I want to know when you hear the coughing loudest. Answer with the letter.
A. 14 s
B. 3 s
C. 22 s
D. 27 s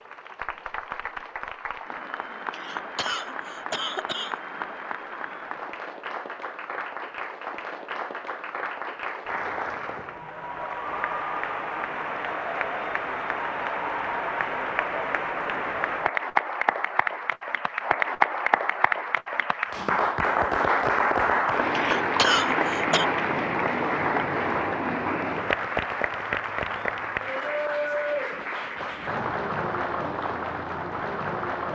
C.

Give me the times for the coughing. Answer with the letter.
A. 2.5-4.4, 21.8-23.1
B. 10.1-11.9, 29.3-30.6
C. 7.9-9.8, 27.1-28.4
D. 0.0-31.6
A.